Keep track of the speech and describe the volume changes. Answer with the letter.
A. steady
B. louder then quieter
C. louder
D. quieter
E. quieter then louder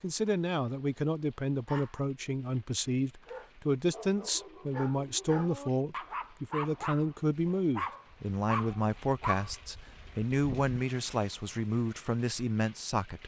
A.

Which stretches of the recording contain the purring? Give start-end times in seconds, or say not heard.
not heard.